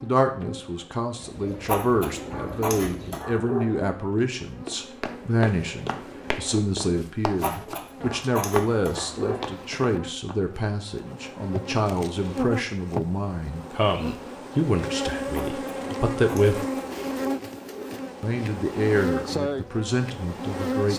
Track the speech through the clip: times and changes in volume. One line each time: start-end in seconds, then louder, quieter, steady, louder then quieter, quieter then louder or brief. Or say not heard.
0.0-16.7 steady
18.2-20.9 brief.